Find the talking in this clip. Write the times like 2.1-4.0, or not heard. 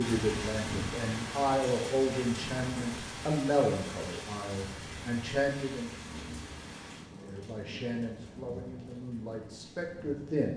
0.0-5.9, 7.2-10.5.